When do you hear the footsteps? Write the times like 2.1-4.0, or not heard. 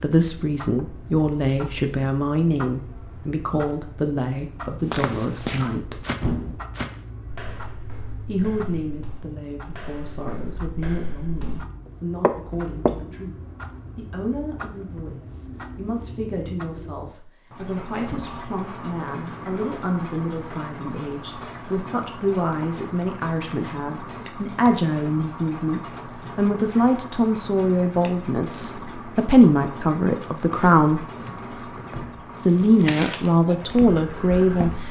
4.9-12.9, 32.6-34.8.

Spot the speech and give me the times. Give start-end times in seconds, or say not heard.
0.0-6.0, 8.2-13.3, 13.9-31.1, 32.5-34.7.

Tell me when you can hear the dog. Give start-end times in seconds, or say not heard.
not heard.